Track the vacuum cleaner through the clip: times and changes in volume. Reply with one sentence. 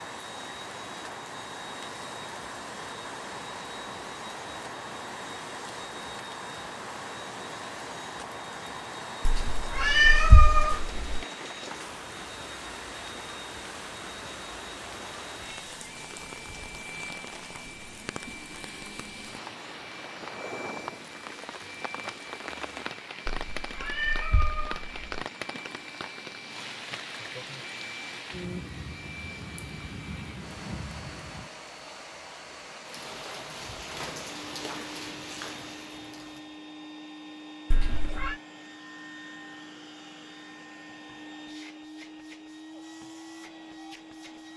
You can hear the vacuum cleaner from 0.0 to 44.5 s, at a steady volume.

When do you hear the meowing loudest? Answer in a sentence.
The loudest moment of the meowing is at 10 seconds.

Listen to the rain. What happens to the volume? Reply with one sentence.
The volume of the rain stays about the same.